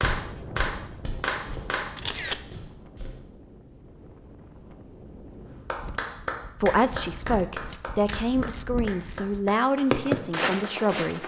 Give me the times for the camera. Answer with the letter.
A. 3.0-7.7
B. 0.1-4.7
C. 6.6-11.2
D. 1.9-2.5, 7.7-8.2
D.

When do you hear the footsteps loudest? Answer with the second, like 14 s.
10 s.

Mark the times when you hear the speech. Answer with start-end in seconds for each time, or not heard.
6.6-11.2.